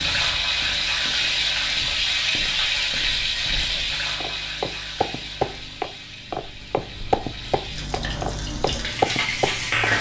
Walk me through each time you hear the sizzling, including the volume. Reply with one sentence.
You can hear the sizzling from 0.0 to 9.9 s, getting quieter then louder.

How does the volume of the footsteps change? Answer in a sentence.
The volume of the footsteps goes up.